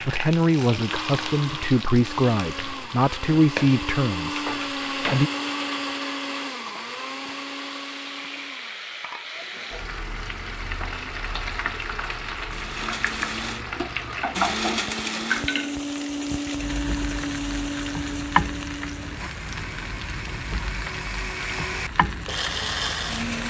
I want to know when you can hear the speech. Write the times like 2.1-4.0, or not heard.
0.0-5.3.